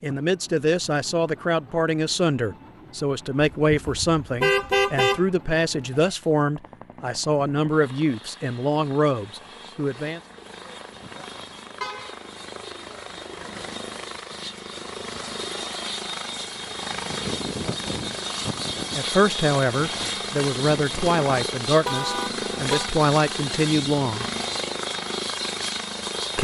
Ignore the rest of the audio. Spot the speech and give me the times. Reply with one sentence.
The speech can be heard from 0.0 to 10.2 s and from 18.9 to 24.2 s.